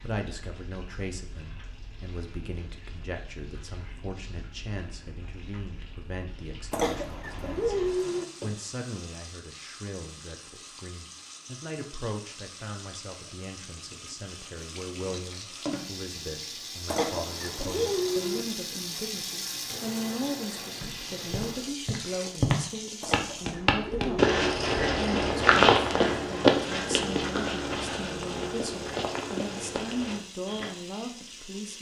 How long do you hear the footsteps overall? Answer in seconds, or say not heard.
10 s.